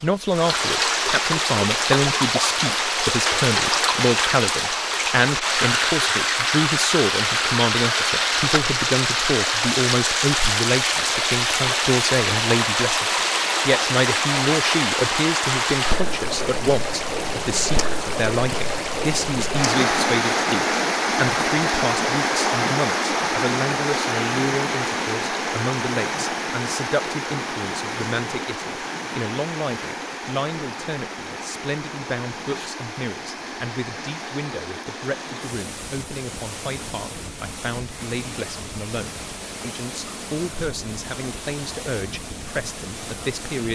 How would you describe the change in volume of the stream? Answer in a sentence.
The volume of the stream goes down.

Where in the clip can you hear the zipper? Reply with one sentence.
The zipper can't be heard in this clip.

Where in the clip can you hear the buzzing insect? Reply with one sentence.
The buzzing insect can't be heard in this clip.